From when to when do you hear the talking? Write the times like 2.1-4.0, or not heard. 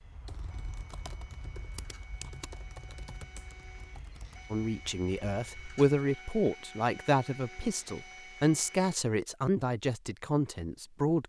4.5-11.2.